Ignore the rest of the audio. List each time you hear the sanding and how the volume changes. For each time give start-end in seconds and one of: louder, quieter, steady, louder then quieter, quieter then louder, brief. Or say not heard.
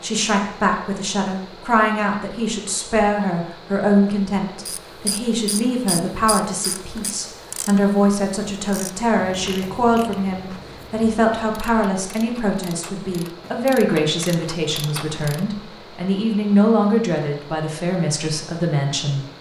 not heard.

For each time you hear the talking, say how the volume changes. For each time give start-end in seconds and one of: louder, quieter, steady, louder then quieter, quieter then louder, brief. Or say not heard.
0.0-19.3 steady.